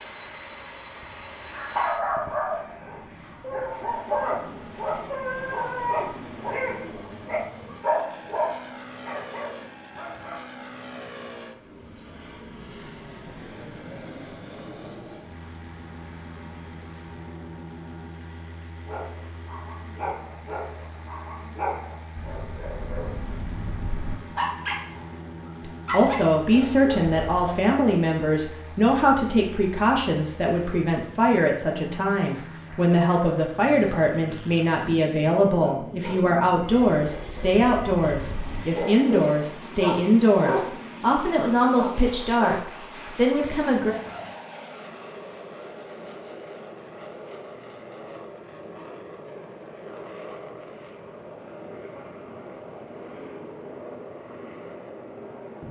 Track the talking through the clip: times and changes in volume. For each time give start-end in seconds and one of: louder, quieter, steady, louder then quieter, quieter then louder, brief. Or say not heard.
25.6-44.0 steady.